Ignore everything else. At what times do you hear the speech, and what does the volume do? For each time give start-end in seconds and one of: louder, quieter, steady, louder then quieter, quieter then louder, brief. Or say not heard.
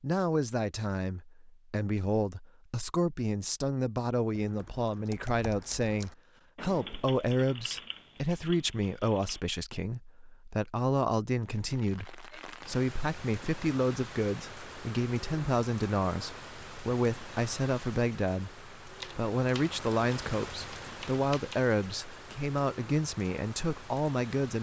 0.0-24.5 steady.